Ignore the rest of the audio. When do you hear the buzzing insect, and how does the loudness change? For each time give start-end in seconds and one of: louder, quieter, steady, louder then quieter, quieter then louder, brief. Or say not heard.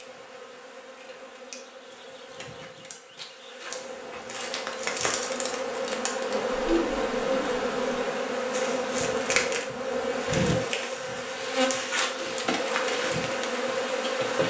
0.0-14.4 louder.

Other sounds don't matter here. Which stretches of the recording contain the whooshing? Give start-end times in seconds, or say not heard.
6.5-8.0.